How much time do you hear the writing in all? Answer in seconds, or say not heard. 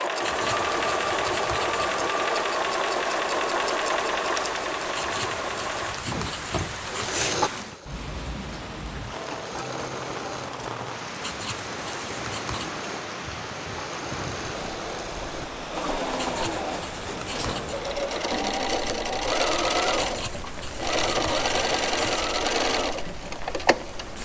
10 s.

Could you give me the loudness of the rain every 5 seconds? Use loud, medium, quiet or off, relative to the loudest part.
loud, loud, loud, loud, medium.